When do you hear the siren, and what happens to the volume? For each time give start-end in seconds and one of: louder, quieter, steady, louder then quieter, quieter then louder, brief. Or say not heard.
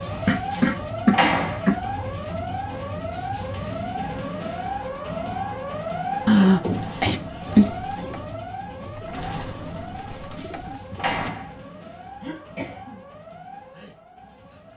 0.0-14.7 quieter.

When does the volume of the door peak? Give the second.
1 s.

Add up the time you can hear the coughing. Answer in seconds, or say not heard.
4 s.